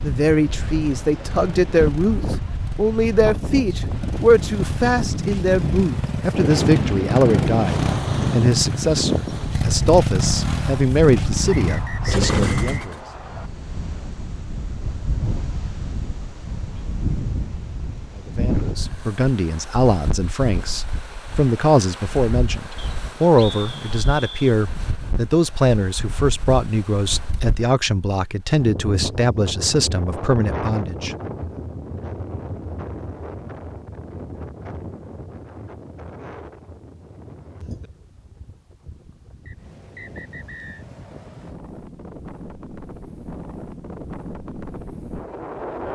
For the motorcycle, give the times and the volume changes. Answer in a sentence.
The motorcycle can be heard from 0.0 to 13.0 s, getting louder.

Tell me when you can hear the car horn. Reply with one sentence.
The car horn can't be heard in this clip.